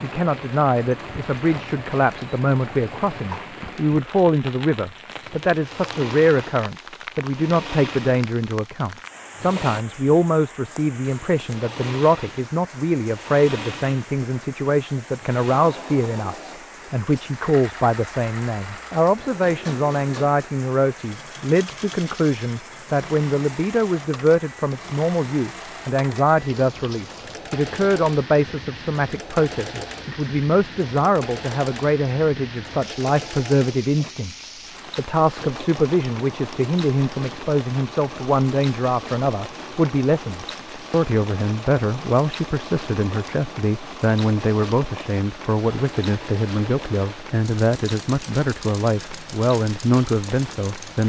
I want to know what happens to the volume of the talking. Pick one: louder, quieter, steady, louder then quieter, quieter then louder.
steady.